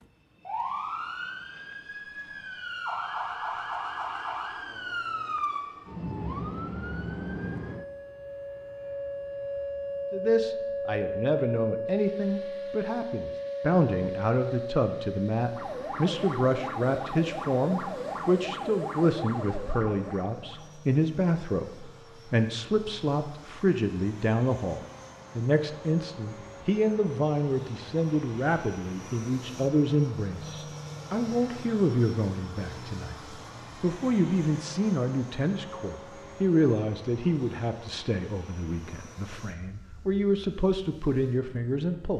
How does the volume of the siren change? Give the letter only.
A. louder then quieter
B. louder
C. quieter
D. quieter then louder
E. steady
E.